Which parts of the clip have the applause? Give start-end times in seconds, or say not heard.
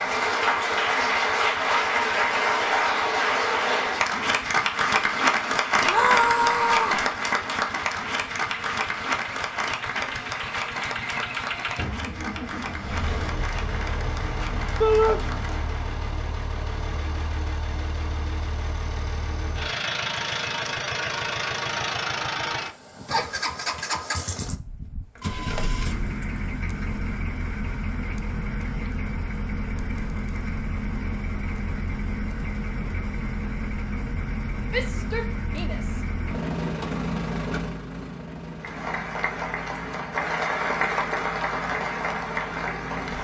0.0-15.7, 38.5-43.1.